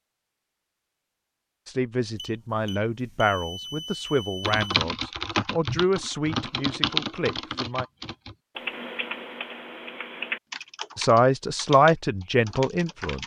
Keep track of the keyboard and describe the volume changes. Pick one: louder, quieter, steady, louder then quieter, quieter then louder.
quieter.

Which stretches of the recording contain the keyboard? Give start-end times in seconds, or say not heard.
4.4-13.2.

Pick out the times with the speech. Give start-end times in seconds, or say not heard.
1.6-7.8, 10.9-13.2.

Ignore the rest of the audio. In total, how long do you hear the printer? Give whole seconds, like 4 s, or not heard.
not heard.